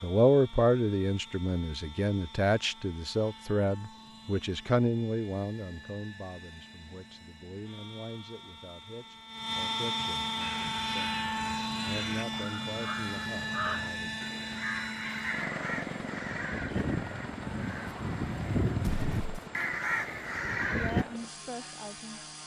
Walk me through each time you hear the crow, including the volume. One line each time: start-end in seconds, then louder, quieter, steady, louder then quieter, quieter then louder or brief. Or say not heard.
10.3-21.1 louder.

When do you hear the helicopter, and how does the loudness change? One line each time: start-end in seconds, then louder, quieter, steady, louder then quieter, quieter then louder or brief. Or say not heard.
0.0-22.4 louder then quieter.